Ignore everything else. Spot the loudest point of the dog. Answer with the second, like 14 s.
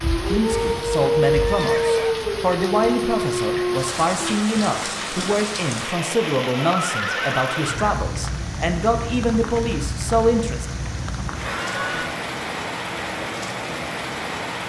1 s.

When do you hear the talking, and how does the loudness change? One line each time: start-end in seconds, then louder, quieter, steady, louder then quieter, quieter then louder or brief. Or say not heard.
0.1-10.7 steady.